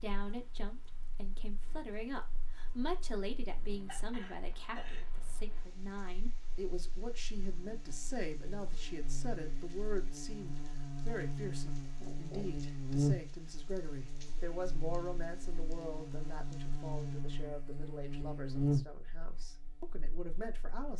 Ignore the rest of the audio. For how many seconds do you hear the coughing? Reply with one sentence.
The coughing can be heard for 2 seconds in total.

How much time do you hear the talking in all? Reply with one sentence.
You can hear the talking for 21 seconds altogether.